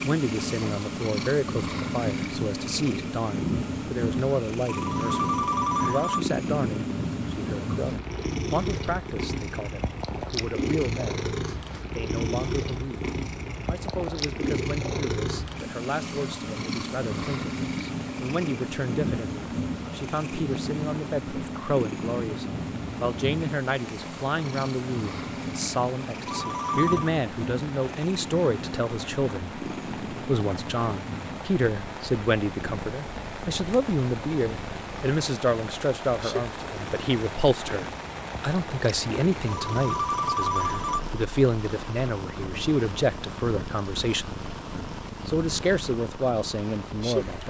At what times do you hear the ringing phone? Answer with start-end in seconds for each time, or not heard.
4.7-6.3, 26.2-27.1, 39.5-41.1.